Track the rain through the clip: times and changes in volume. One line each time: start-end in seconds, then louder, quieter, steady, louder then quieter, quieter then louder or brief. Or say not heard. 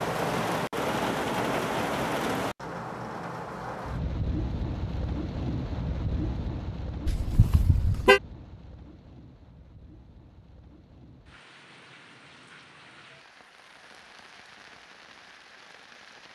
0.0-16.3 quieter.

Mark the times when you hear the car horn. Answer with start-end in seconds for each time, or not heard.
7.0-8.2.